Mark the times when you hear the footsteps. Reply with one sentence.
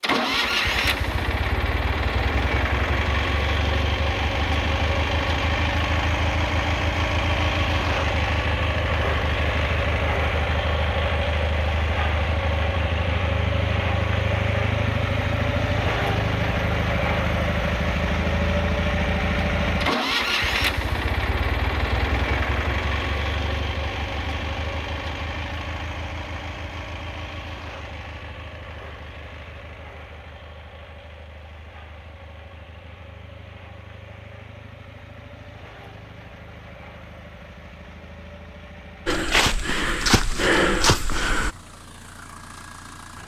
You can hear the footsteps from 39.0 to 41.5 s.